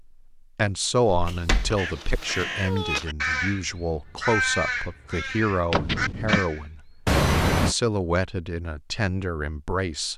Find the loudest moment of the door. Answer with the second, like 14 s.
6 s.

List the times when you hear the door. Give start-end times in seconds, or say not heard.
1.2-1.8, 5.7-6.4.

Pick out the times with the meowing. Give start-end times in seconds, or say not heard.
1.2-3.0, 7.0-7.8.